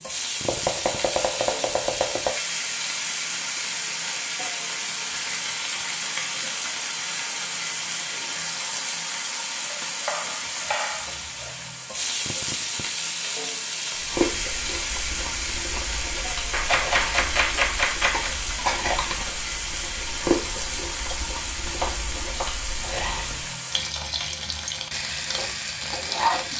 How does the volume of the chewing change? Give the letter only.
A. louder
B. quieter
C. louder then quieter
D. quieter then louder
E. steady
C.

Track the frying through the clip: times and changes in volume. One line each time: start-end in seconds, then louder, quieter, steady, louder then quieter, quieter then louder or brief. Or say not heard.
0.0-26.5 steady.